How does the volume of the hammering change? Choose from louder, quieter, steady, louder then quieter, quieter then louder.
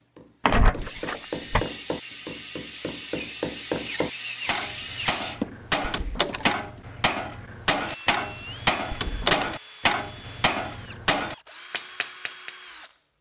louder.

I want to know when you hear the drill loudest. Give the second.
5 s.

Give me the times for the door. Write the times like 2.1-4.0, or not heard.
0.5-1.6, 5.8-6.5, 8.9-9.5.